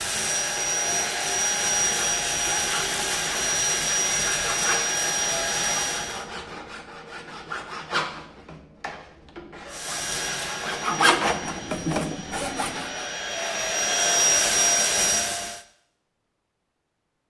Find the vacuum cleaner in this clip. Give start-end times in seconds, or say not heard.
0.0-6.3, 9.7-15.6.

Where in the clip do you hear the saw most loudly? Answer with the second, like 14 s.
11 s.